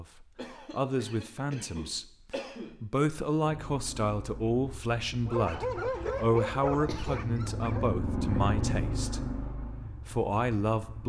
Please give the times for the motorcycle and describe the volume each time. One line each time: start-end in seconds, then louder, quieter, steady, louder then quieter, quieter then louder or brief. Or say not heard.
3.4-11.0 louder then quieter.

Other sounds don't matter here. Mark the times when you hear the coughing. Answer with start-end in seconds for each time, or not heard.
0.3-2.8, 6.7-7.2.